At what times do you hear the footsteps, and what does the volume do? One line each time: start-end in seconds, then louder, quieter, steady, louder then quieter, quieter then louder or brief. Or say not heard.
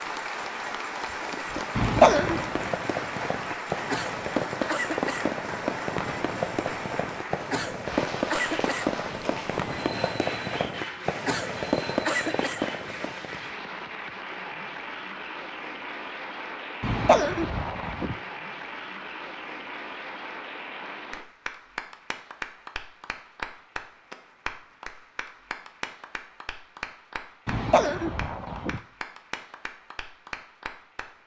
not heard.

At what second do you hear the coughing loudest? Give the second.
2 s.